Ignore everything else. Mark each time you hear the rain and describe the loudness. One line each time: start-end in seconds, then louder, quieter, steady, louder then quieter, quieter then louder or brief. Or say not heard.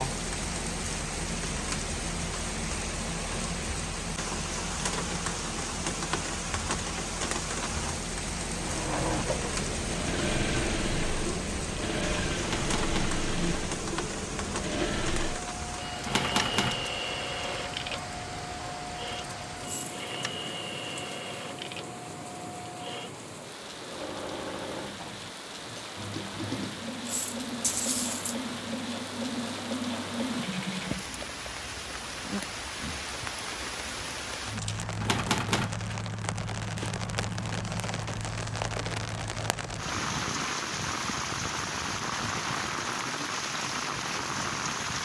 0.0-44.9 quieter then louder.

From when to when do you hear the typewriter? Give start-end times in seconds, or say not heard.
12.4-13.2, 16.1-16.9, 35.0-35.8.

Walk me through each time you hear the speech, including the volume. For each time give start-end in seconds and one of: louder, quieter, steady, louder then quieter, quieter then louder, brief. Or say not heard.
not heard.